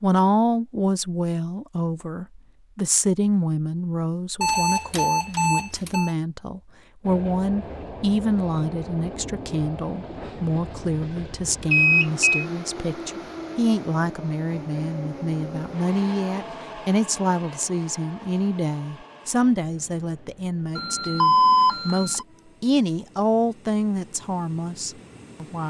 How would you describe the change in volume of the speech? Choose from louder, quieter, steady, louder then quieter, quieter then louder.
steady.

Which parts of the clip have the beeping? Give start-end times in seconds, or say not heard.
4.4-6.1, 11.7-12.4, 20.8-22.2.